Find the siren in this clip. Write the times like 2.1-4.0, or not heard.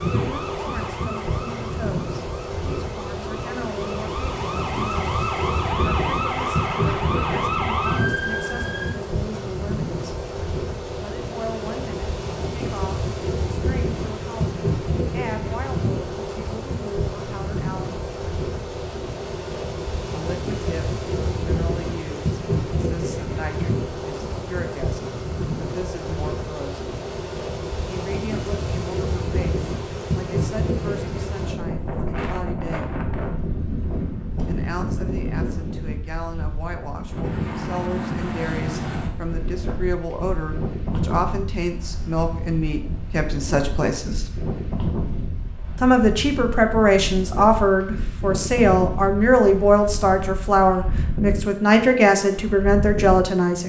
0.0-8.9.